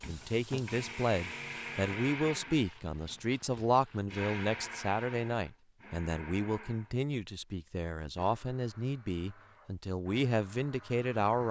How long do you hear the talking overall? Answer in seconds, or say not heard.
11 s.